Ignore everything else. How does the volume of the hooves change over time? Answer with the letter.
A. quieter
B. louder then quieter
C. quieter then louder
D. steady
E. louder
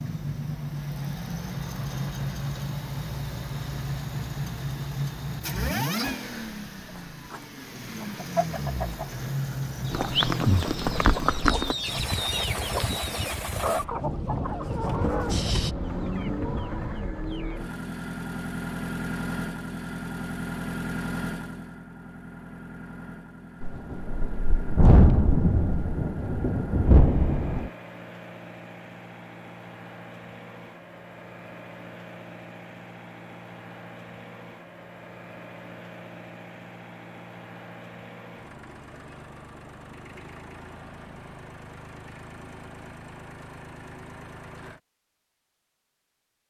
C.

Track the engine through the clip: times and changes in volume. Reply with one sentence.
The engine can be heard from 0.0 to 44.8 s, getting quieter.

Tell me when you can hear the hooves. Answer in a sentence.
You can hear the hooves from 9.9 to 15.8 s.